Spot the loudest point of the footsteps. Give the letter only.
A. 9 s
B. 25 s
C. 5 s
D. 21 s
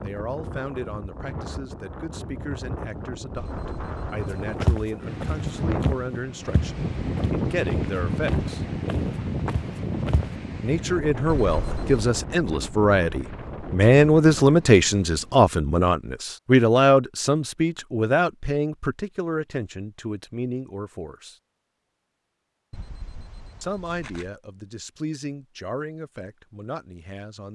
C.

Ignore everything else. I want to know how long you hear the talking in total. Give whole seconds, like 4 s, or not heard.
23 s.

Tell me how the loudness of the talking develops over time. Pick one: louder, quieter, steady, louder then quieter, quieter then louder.
louder then quieter.